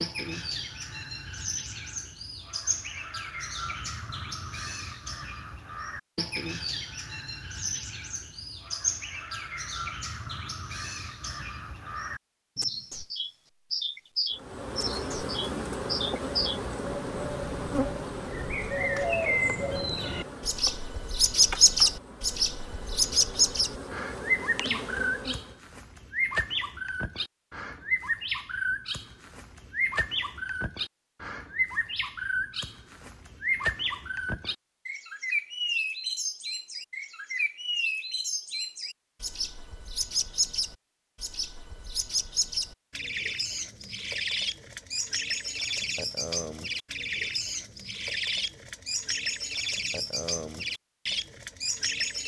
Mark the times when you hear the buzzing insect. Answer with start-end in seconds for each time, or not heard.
14.3-25.6.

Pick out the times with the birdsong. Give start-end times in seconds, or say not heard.
0.0-52.2.